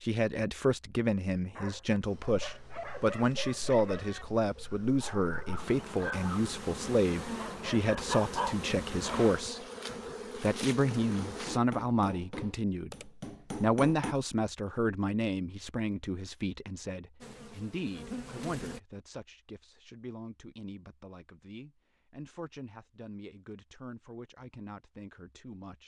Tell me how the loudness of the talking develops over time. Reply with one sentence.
The loudness of the talking goes down.